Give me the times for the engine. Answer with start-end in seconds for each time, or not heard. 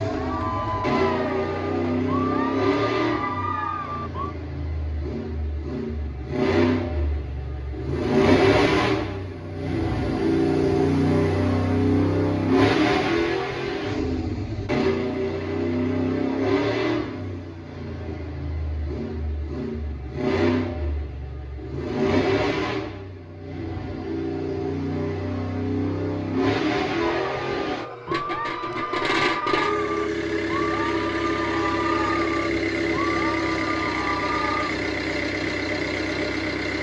0.0-36.7.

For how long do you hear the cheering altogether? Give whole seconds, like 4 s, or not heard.
12 s.